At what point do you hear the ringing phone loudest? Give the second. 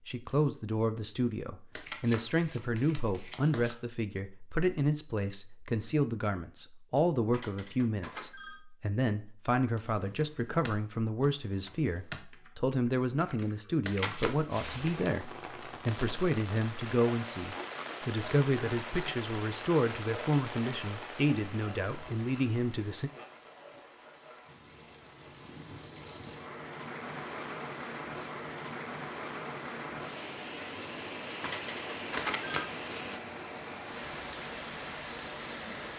32 s.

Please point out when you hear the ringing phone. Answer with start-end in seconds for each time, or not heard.
7.3-8.7, 31.4-32.7.